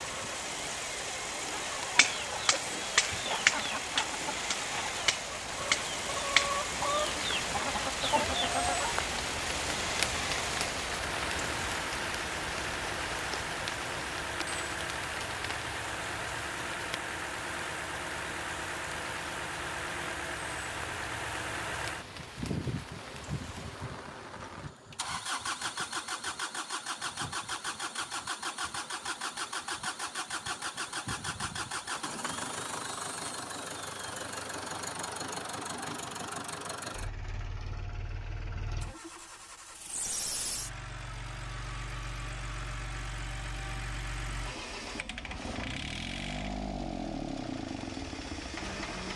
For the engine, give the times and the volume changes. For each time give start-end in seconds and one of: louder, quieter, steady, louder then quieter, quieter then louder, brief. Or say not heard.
0.0-49.1 steady.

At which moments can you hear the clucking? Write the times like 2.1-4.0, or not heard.
1.6-9.0.